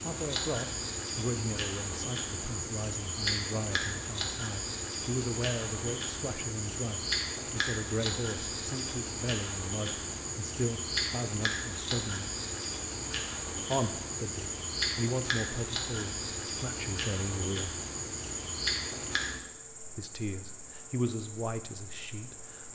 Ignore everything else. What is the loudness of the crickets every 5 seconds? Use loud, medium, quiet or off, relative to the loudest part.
loud, loud, loud, loud, medium.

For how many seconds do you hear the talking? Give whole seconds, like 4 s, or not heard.
19 s.